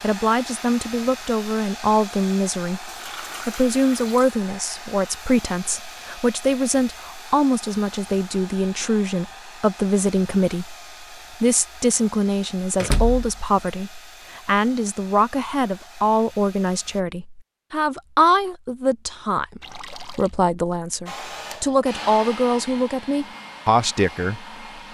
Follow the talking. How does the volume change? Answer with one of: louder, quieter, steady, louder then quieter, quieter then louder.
steady.